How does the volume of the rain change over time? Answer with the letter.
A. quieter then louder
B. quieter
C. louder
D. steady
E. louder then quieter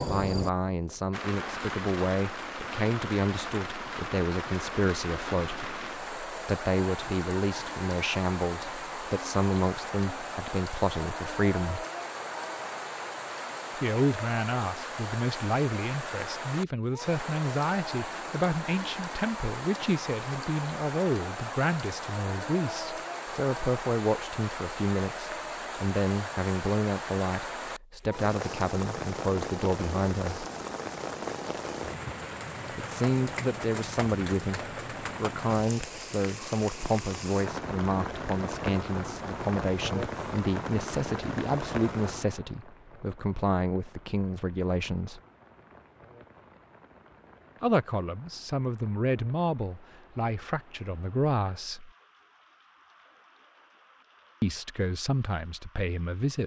B.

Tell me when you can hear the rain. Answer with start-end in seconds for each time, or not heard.
0.0-56.4.